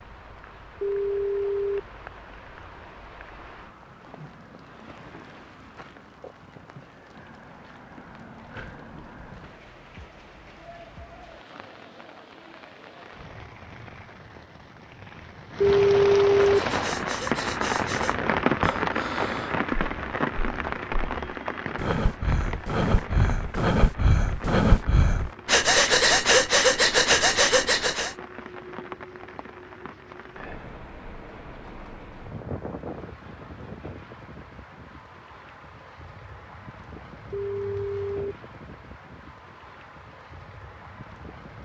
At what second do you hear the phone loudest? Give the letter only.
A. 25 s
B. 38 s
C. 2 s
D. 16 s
D.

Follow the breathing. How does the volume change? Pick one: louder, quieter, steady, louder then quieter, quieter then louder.
louder.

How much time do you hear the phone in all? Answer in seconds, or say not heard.
3 s.